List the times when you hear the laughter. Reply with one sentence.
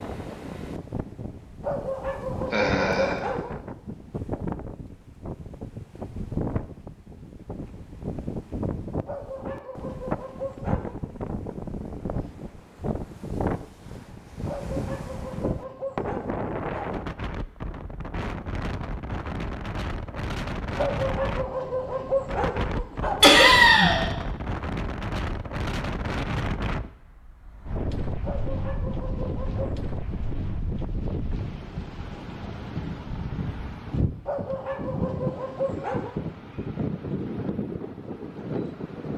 You can hear the laughter from 2.5 to 3.2 s and from 23.2 to 24.0 s.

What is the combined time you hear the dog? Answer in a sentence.
You can hear the dog for 13 seconds altogether.